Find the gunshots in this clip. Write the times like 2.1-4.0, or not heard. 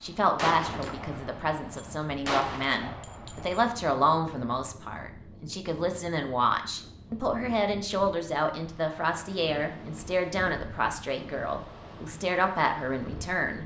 0.3-3.6.